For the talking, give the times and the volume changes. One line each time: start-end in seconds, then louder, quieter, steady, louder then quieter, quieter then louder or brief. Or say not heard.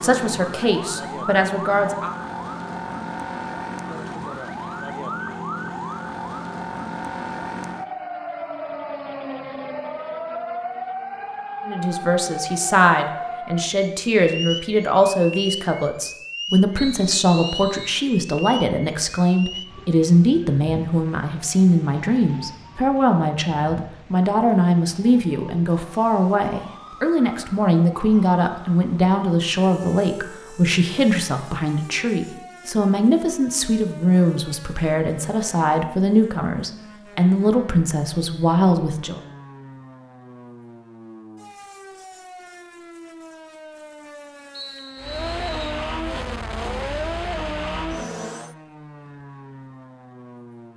0.0-2.1 brief
11.7-39.2 steady.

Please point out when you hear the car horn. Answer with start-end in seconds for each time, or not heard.
not heard.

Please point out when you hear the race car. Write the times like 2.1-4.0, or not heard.
45.0-48.5.